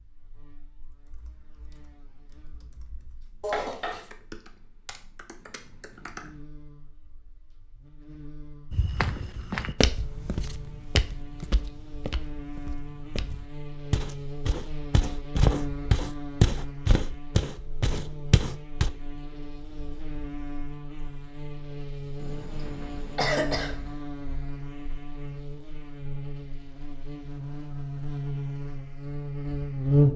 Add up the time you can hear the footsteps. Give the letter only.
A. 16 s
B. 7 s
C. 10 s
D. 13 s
C.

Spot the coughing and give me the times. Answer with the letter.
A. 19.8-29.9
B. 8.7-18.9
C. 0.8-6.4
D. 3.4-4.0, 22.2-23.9
D.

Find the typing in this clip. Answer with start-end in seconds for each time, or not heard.
0.8-6.4.